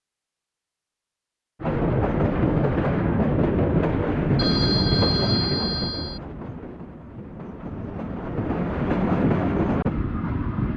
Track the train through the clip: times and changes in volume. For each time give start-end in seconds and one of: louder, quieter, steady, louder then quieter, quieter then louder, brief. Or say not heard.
1.6-10.7 quieter then louder.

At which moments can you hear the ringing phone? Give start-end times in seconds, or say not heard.
4.3-6.2.